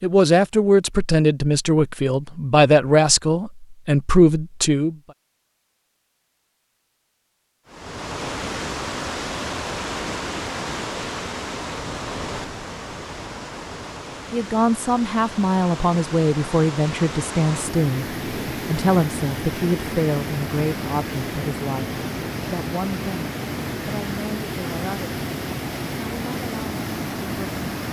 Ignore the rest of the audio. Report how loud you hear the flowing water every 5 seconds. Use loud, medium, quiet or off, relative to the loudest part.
off, loud, loud, loud, loud, loud.